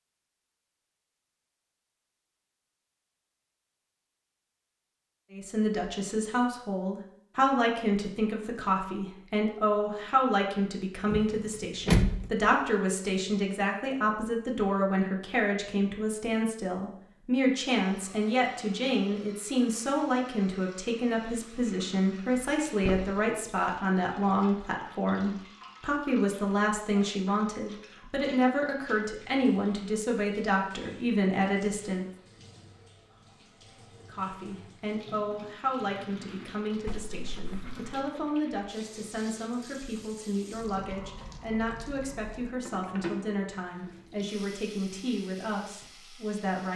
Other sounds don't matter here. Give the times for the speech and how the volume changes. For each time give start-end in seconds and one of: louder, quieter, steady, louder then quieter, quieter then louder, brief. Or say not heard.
5.3-32.0 steady
34.0-46.7 steady.